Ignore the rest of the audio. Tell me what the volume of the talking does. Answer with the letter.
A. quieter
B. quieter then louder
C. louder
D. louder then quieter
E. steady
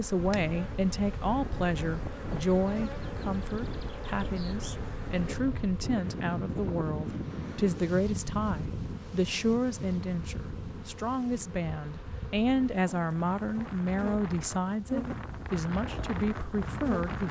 E.